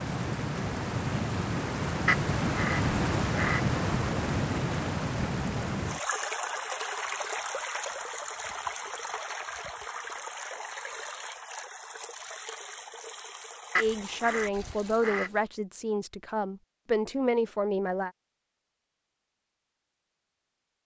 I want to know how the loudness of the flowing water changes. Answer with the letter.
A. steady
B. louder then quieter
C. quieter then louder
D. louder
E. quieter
E.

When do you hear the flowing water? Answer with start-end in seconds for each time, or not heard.
0.0-15.4.